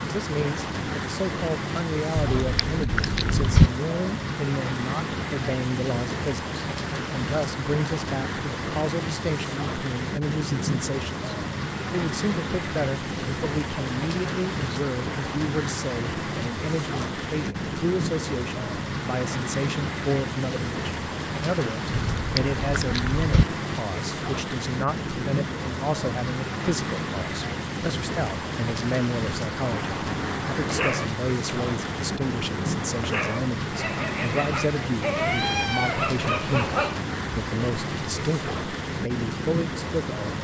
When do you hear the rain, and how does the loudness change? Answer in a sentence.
The rain can be heard from 0.0 to 40.3 s, at a steady volume.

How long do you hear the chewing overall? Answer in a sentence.
You can hear the chewing for 3 seconds altogether.